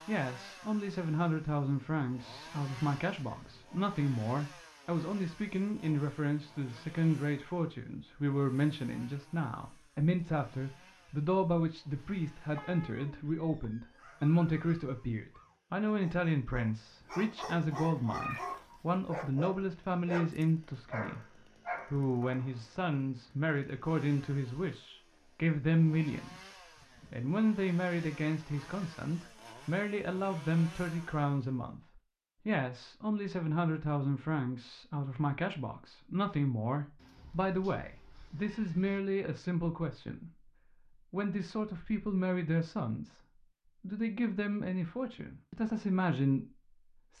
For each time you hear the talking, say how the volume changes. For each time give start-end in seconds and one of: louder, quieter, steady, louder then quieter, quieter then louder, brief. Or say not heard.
0.1-26.5 steady
27.1-47.1 steady.